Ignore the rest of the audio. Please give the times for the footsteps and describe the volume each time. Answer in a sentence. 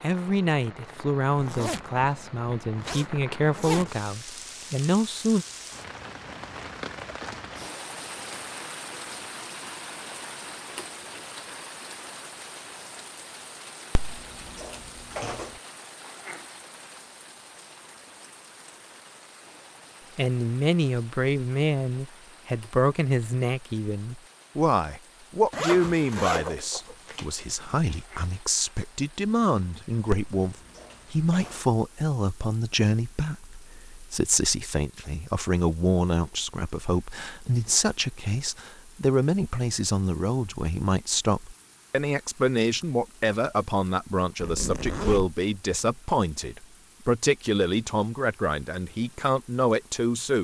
The footsteps can't be heard in this clip.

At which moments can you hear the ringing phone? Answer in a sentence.
The ringing phone can be heard from 13.9 to 15.5 s and from 30.1 to 31.6 s.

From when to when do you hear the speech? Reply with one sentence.
The speech can be heard from 0.0 to 5.5 s and from 20.1 to 50.3 s.